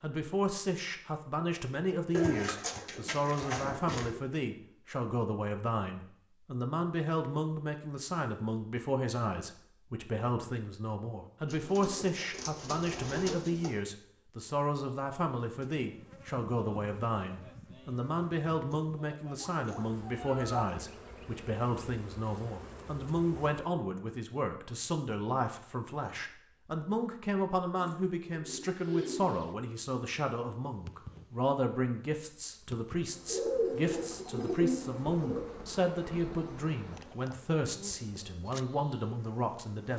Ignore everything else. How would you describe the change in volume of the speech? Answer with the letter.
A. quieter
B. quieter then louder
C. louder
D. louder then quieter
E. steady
E.